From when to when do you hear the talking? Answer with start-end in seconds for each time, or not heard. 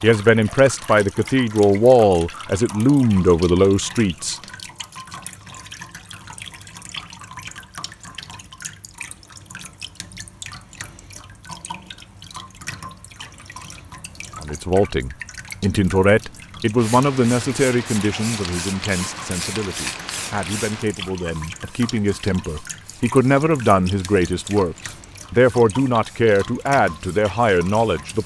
0.0-4.3, 14.4-28.2.